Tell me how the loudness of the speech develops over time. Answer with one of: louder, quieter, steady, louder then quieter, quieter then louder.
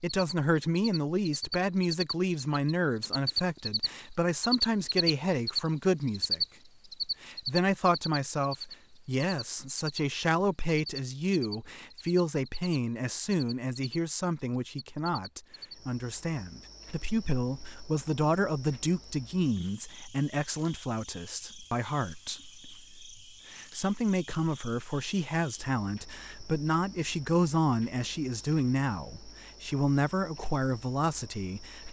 steady.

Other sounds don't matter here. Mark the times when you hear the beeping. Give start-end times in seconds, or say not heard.
not heard.